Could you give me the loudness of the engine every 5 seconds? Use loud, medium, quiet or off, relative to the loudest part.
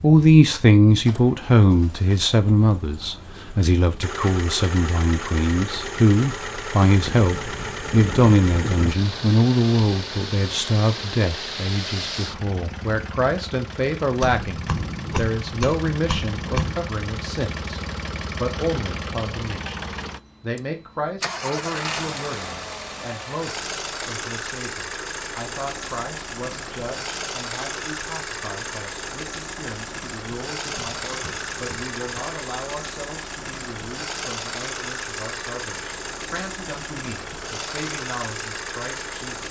medium, loud, loud, loud, loud, loud, loud, loud.